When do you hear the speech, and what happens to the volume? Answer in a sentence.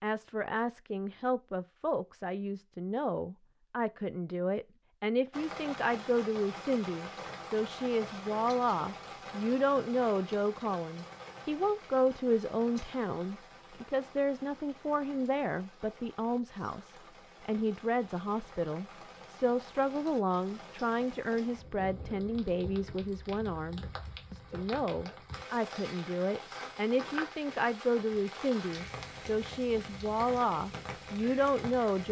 The speech can be heard from 0.0 to 32.0 s, at a steady volume.